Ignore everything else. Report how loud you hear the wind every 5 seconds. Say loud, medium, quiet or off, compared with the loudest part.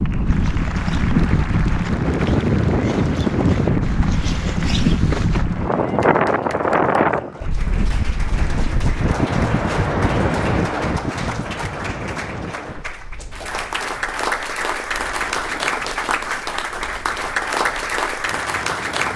loud, loud, medium, quiet.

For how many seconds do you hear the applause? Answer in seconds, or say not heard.
19 s.